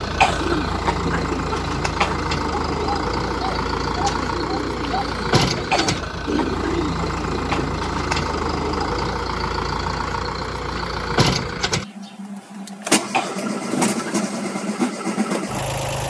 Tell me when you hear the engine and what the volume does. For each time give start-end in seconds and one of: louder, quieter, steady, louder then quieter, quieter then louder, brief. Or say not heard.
0.0-16.0 steady.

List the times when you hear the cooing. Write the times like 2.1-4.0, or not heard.
0.3-8.9.